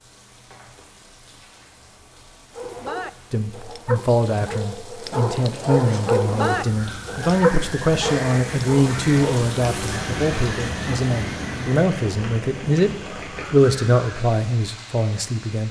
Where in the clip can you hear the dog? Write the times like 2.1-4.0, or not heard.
2.5-9.4.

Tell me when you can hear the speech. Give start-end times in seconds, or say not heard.
3.3-12.9, 13.5-15.6.